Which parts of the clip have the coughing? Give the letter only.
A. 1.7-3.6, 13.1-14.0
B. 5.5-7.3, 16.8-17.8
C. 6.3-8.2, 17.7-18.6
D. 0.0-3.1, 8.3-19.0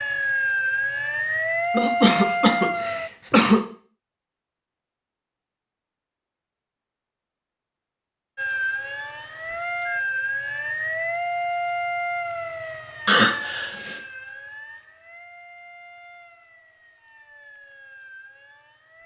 A.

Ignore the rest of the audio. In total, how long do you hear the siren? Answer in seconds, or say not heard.
14 s.